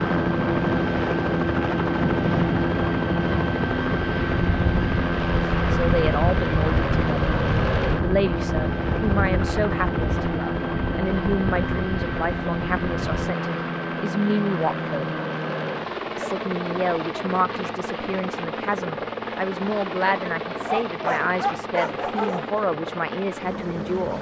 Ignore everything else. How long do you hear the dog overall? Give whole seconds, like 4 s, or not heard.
2 s.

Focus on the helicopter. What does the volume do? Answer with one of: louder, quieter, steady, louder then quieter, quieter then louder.
quieter.